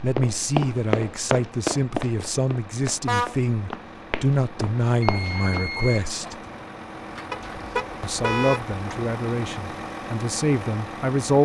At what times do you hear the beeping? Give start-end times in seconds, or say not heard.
5.0-6.1.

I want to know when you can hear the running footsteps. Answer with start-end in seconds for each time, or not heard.
0.0-5.7.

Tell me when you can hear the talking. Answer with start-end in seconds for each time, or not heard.
0.0-6.3, 8.0-11.4.